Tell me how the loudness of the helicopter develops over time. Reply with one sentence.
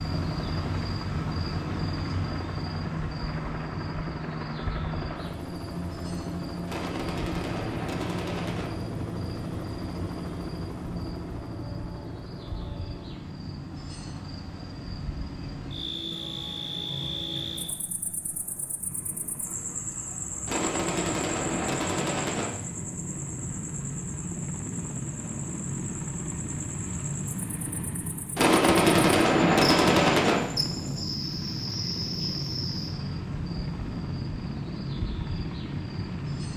The loudness of the helicopter goes down, then up.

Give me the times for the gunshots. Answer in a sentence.
You can hear the gunshots from 6.7 to 8.7 s, from 20.4 to 22.5 s and from 28.4 to 30.4 s.